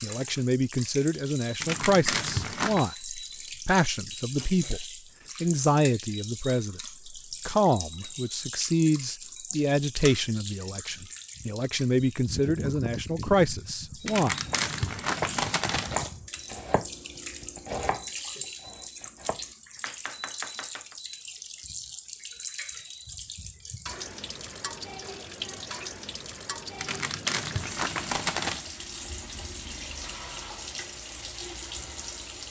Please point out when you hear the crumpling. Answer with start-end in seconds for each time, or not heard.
1.6-2.9, 14.1-16.1, 26.8-28.7.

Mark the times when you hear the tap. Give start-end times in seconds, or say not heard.
0.0-32.4.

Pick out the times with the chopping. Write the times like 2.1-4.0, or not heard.
14.4-20.9.